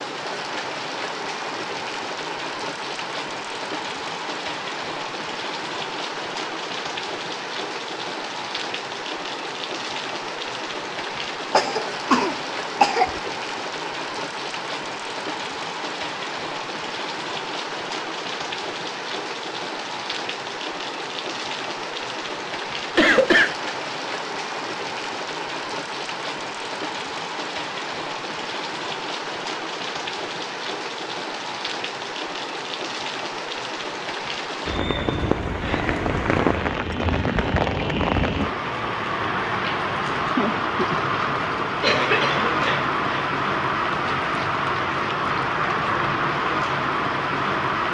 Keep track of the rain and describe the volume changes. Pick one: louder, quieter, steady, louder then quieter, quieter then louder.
louder.